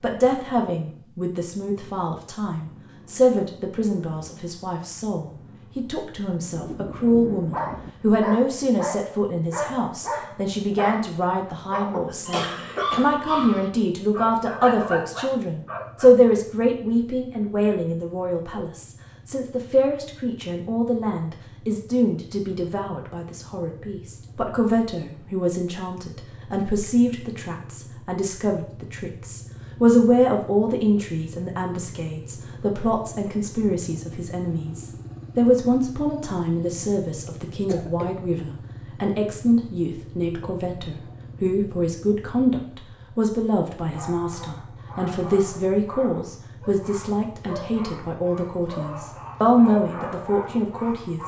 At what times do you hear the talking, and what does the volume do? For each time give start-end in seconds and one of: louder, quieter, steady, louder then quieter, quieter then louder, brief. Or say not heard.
0.0-51.2 steady.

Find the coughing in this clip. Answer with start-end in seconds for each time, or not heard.
12.1-13.7, 37.2-38.1.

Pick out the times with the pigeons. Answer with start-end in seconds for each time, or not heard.
not heard.